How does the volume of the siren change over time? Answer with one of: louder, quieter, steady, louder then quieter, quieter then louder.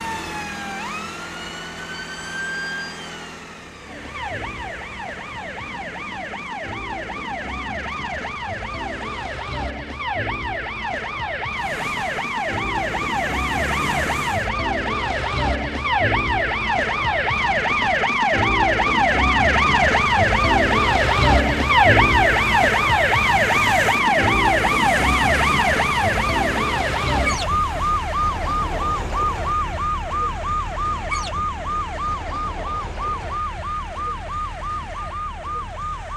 louder then quieter.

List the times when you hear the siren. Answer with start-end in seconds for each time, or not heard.
0.0-36.1.